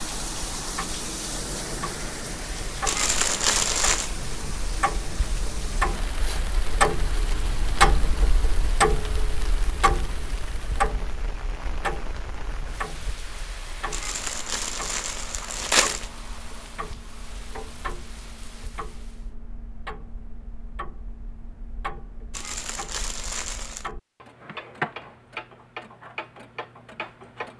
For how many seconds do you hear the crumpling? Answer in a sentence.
You can hear the crumpling for 5 seconds altogether.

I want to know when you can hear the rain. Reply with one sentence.
The rain can be heard from 0.0 to 19.4 s.